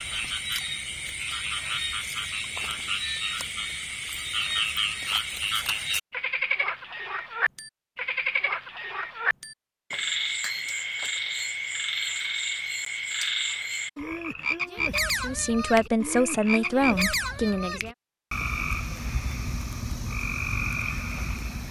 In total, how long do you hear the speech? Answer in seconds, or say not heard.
3 s.